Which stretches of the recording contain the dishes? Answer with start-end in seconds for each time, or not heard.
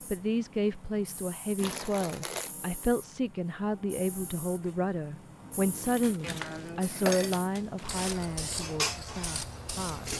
5.7-10.1.